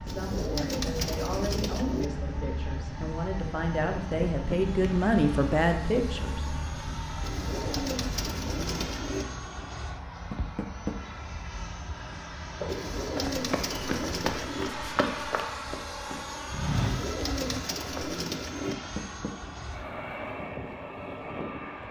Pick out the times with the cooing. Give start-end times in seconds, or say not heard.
0.1-2.1, 7.2-9.2, 12.7-14.7, 16.7-18.8.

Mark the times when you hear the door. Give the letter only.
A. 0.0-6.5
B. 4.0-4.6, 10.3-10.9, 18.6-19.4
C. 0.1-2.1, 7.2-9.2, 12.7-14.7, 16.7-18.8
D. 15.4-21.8
B.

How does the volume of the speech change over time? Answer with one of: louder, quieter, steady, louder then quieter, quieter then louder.
louder.